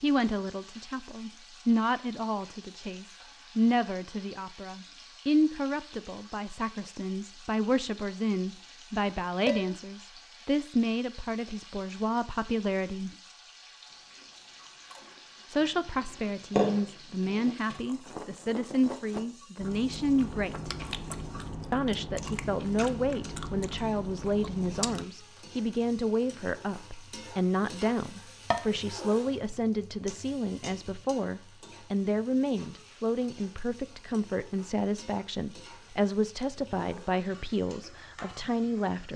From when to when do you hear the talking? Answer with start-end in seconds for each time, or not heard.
0.0-13.1, 15.5-20.7, 21.7-39.1.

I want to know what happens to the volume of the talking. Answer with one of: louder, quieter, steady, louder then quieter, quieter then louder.
steady.